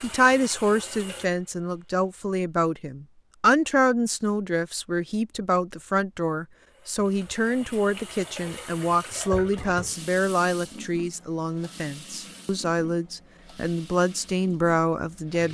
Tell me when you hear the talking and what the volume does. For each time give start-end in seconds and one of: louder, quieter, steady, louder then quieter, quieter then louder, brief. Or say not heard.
0.0-15.4 steady.